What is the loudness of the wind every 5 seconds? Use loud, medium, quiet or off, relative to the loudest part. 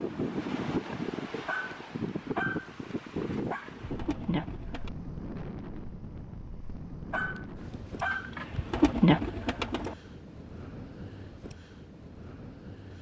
loud, medium, medium.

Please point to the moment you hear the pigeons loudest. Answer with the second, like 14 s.
9 s.